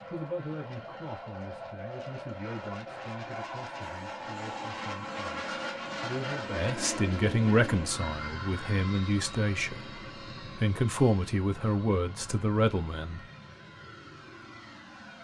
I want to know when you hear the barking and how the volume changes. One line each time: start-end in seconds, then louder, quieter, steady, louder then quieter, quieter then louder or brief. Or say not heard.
not heard.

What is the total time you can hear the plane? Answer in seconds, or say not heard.
15 s.